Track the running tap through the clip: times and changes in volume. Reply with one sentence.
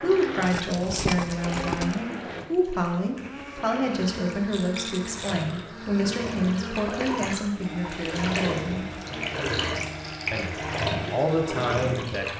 You can hear the running tap from 0.0 to 12.3 s, getting louder.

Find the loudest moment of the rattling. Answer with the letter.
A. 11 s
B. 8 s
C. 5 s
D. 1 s
D.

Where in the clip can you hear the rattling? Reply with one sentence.
You can hear the rattling from 0.4 to 1.9 s, from 4.5 to 5.7 s and from 9.9 to 10.5 s.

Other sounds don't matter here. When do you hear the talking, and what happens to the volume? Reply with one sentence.
The talking can be heard from 0.0 to 8.8 s, at a steady volume; and briefly from 10.3 to 12.3 s.